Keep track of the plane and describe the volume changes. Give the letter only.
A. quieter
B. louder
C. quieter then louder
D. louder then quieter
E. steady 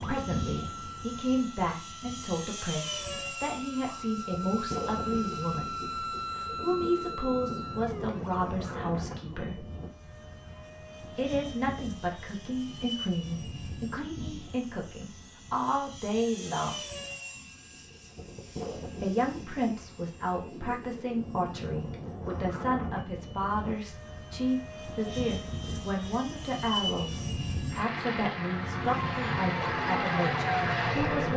B.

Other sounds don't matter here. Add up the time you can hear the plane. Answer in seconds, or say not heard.
31 s.